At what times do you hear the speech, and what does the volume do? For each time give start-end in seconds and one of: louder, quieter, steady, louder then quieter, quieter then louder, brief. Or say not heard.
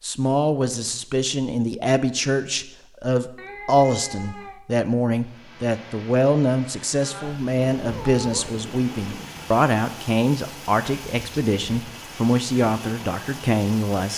0.0-14.1 steady.